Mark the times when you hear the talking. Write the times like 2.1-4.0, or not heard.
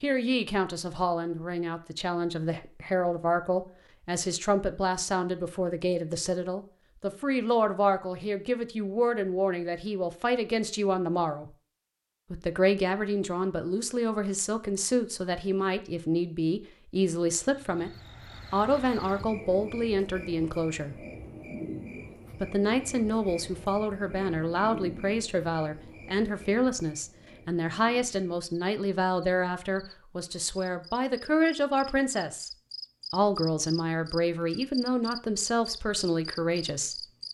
0.0-11.5, 12.3-21.0, 22.4-32.5, 33.1-37.0.